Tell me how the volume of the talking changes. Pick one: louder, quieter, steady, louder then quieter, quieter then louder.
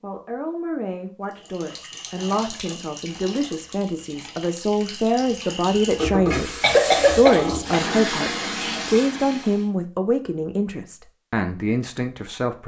louder then quieter.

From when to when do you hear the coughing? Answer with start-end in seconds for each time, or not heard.
6.6-7.8.